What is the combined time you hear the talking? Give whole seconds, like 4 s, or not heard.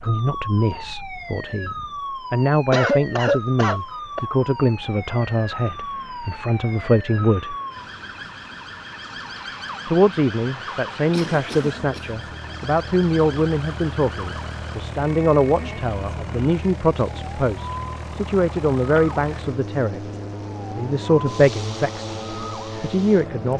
20 s.